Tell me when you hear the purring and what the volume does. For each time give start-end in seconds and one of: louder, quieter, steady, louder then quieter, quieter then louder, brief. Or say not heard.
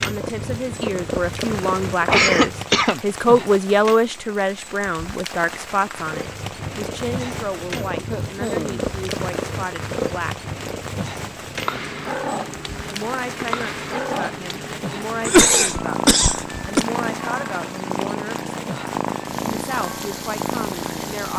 0.0-2.8 brief
6.0-21.3 steady.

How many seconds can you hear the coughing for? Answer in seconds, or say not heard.
4 s.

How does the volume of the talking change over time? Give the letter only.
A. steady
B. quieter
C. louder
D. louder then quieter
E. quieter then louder
B.